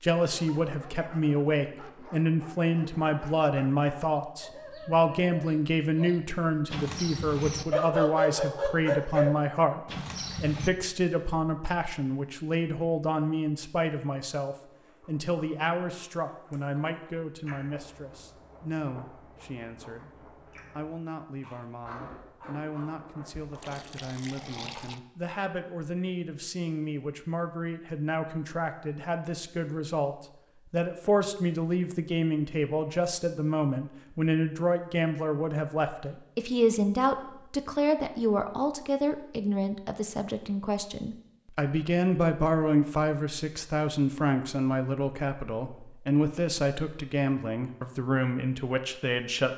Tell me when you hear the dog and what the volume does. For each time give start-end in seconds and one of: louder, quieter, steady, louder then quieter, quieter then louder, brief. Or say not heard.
0.2-10.7 louder.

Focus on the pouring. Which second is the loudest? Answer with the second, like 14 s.
25 s.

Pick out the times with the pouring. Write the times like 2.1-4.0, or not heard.
23.3-25.0.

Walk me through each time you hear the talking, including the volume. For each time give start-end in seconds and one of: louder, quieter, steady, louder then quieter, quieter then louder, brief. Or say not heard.
0.0-49.5 quieter then louder.